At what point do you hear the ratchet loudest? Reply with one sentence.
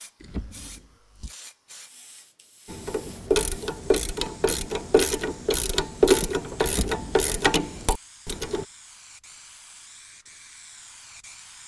The loudest moment of the ratchet is at 6 seconds.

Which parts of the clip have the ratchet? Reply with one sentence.
You can hear the ratchet from 2.6 to 8.7 s.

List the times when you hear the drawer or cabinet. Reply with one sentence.
You can hear the drawer or cabinet from 0.2 to 1.3 s and from 6.6 to 7.2 s.